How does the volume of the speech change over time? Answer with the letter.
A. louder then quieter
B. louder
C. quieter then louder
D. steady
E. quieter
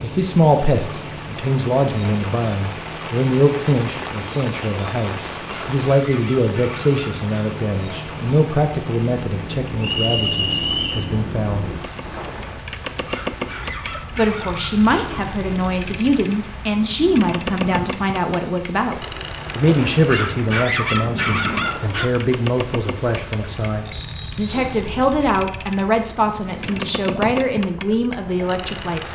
D.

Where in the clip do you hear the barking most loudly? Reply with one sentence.
The volume of the barking peaks at 21 seconds.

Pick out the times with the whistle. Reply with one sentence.
You can hear the whistle from 9.8 to 11.1 s and from 23.9 to 24.8 s.